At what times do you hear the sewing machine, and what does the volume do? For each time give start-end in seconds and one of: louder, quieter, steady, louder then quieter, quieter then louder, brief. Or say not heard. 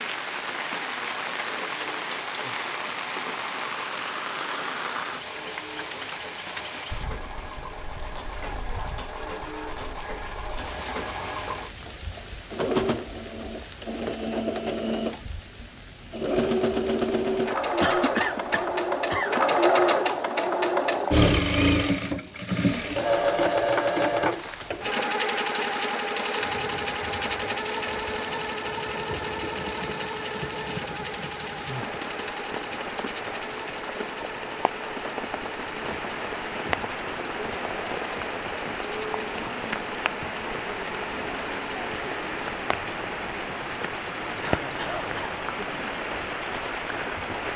0.0-47.5 louder then quieter.